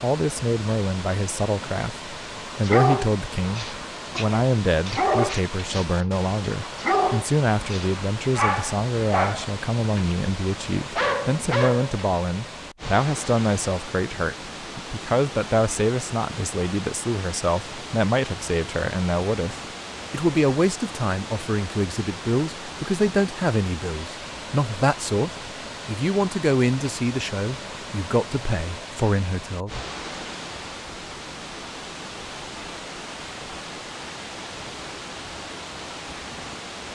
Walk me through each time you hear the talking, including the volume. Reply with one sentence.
The talking can be heard from 0.0 to 29.8 s, at a steady volume.